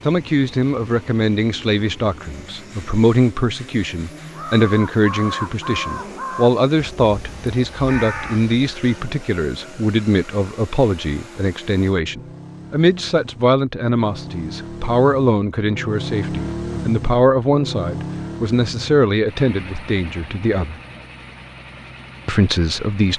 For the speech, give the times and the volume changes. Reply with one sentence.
You can hear the speech from 0.1 to 20.8 s, at a steady volume; and briefly from 22.2 to 23.1 s.